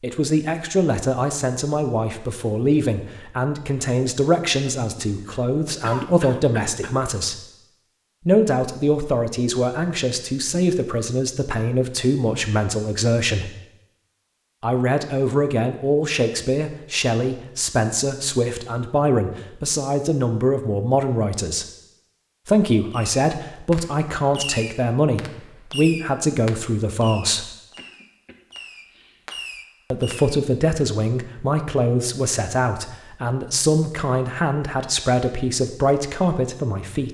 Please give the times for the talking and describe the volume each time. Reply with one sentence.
You can hear the talking from 0.0 to 7.5 s, at a steady volume; from 8.2 to 13.5 s, at a steady volume; from 14.6 to 21.6 s, at a steady volume; from 22.4 to 27.5 s, at a steady volume; and from 29.9 to 37.0 s, at a steady volume.